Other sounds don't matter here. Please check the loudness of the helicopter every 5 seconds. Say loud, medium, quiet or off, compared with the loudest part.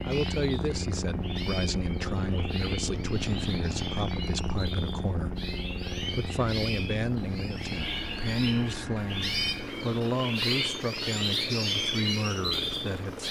loud, loud, medium.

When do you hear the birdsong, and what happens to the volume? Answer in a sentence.
You can hear the birdsong from 0.0 to 13.2 s, getting louder.